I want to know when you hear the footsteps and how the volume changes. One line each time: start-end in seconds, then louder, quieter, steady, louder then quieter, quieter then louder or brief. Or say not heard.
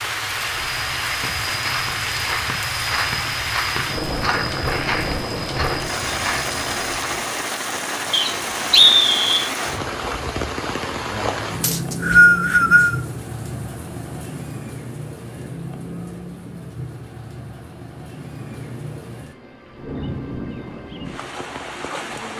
0.3-7.2 steady.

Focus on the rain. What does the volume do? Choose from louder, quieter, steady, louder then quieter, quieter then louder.
quieter.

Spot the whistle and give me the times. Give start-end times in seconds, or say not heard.
8.1-9.5, 11.6-13.1.